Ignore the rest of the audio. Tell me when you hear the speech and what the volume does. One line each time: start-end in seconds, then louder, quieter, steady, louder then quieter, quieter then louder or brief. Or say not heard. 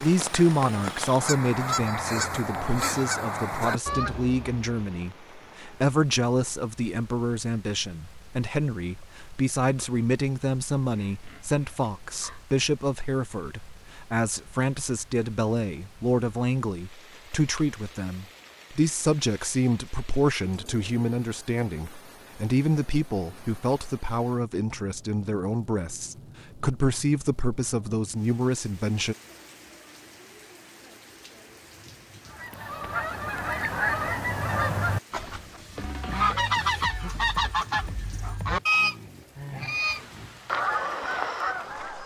0.0-29.1 steady.